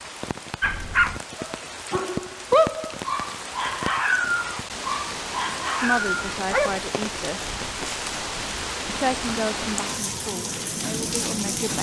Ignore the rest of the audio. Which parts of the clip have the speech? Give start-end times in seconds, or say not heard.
5.8-7.5, 8.8-11.7.